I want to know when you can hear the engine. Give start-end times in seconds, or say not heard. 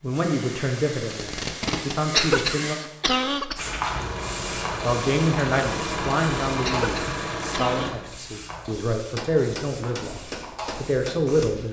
3.5-7.9.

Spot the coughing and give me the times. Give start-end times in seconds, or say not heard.
2.1-3.6, 6.6-8.0.